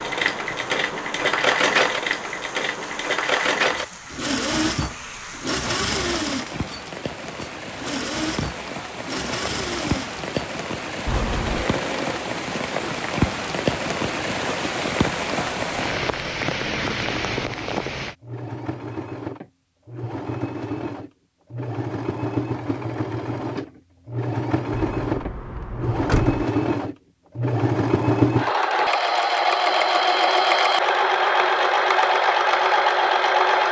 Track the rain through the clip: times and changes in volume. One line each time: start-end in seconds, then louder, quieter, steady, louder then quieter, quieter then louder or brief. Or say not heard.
0.0-18.1 louder.